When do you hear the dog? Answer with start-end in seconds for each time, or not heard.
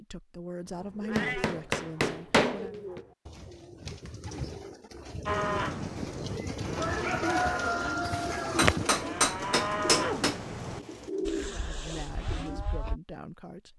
not heard.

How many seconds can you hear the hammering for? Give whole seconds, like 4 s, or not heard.
4 s.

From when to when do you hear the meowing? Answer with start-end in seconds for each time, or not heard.
1.1-1.6, 5.4-7.4, 9.9-11.1.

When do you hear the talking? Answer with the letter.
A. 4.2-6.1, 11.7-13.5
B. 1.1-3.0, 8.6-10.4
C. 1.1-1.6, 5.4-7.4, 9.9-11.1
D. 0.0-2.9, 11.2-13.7
D.